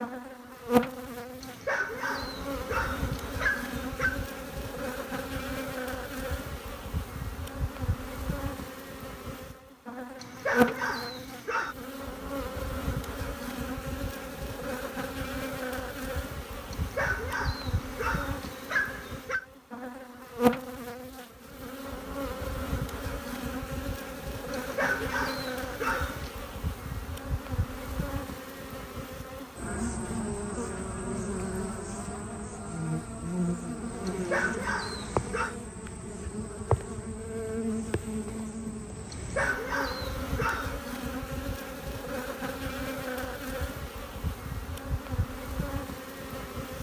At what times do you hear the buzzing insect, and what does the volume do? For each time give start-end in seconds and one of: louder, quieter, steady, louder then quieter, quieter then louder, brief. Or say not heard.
0.0-46.7 steady.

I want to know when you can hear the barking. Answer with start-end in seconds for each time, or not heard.
1.4-4.2, 10.2-11.8, 16.7-19.4, 24.5-26.3, 34.0-35.5, 39.1-40.8.